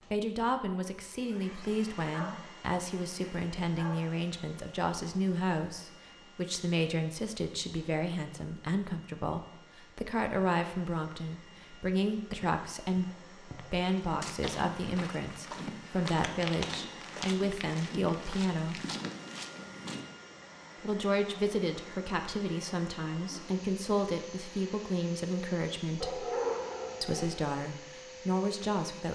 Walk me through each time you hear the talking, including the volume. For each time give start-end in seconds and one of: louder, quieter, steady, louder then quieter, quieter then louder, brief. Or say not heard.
0.1-18.8 steady
20.8-26.2 steady
27.0-29.1 brief.